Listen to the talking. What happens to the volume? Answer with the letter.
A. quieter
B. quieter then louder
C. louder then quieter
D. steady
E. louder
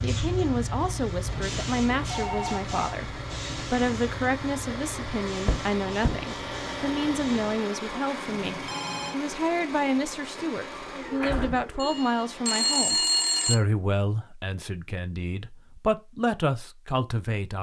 D.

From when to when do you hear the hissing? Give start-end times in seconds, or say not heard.
0.0-7.7.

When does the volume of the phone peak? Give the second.
13 s.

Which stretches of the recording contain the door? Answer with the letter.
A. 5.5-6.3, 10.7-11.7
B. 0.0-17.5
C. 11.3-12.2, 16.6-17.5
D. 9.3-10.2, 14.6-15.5
A.